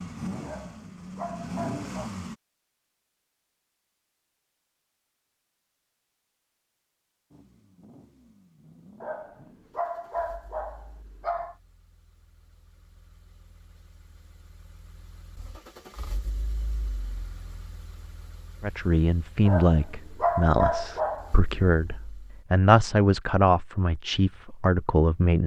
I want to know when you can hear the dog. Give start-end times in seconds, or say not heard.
0.4-2.1, 9.0-11.6, 19.4-21.4.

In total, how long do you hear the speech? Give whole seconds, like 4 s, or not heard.
7 s.